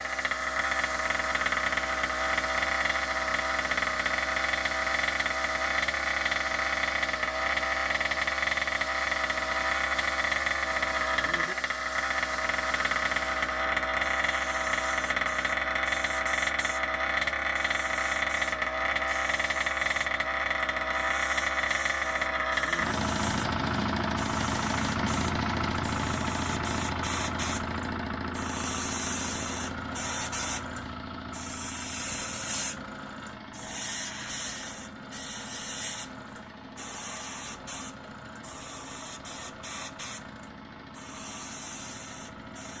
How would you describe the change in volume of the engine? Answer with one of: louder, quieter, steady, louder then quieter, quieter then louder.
quieter.